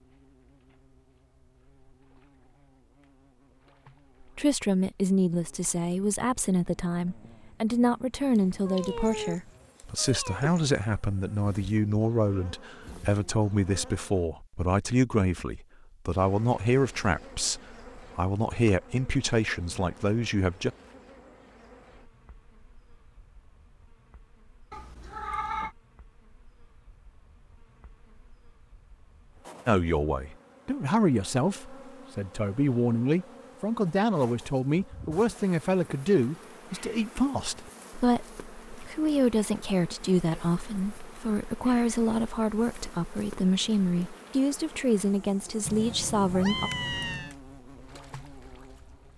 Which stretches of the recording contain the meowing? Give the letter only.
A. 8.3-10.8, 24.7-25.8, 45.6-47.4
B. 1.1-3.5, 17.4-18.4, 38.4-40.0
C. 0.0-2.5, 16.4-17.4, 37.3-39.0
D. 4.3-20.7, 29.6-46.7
A.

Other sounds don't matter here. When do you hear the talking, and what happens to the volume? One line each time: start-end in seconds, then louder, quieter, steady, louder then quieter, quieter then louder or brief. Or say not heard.
4.3-20.7 steady
29.6-46.7 steady.